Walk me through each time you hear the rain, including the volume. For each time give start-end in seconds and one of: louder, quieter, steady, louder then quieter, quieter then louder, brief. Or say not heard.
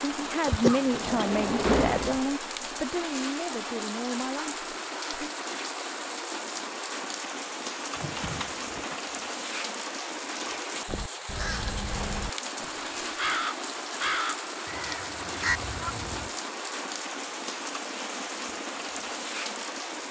0.0-20.0 steady.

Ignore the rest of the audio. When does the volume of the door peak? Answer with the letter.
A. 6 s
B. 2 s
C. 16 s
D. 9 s
B.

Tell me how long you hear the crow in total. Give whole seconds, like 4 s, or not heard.
5 s.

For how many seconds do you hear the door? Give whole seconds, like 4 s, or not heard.
3 s.